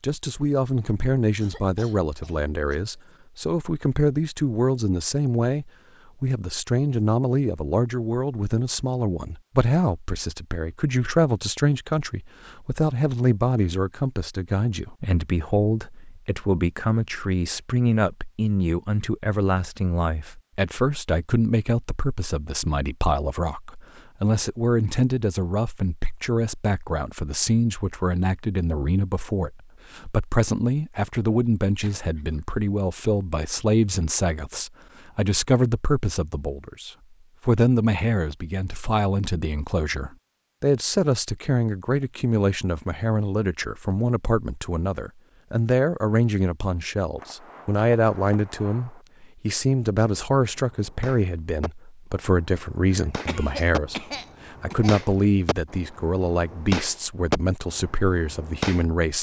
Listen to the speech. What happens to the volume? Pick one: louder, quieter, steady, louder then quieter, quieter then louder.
steady.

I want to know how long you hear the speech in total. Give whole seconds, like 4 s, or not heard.
59 s.